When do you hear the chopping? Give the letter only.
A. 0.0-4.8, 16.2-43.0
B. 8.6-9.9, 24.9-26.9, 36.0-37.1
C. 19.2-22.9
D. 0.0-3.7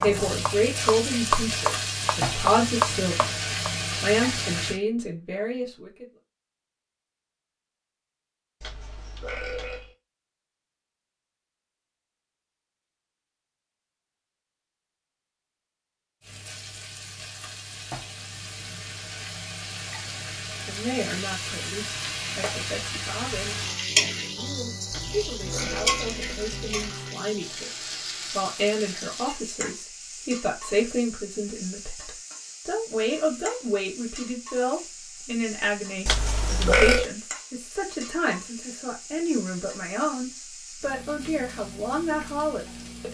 D.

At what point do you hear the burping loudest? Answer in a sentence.
The loudest moment of the burping is at 37 seconds.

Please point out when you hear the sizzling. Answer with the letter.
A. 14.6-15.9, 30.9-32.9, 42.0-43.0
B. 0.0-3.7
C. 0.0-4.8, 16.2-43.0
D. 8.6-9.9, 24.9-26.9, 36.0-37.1
C.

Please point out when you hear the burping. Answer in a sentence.
The burping can be heard from 8.6 to 9.9 s, from 24.9 to 26.9 s and from 36.0 to 37.1 s.